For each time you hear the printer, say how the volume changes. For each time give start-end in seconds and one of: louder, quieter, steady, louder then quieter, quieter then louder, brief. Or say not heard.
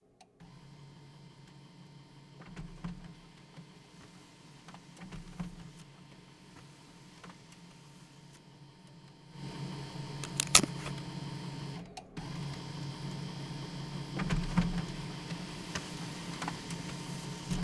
0.0-17.5 louder.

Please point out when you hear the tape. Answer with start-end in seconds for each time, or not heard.
10.2-10.9.